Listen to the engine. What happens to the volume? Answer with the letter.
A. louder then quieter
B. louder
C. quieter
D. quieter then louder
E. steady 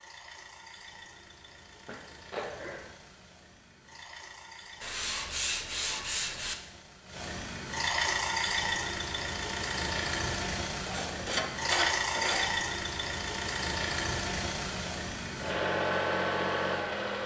B.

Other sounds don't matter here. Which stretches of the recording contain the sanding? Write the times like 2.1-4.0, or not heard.
4.8-6.5, 10.8-12.6.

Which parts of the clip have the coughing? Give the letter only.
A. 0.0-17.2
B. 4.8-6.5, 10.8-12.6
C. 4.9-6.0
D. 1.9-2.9
D.